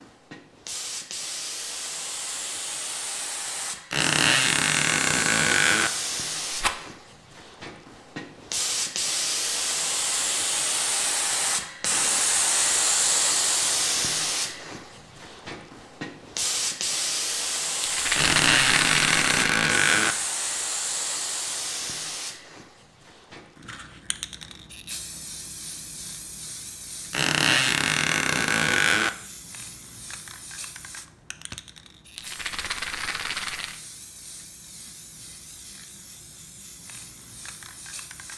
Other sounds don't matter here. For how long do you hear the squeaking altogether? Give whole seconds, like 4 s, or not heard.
6 s.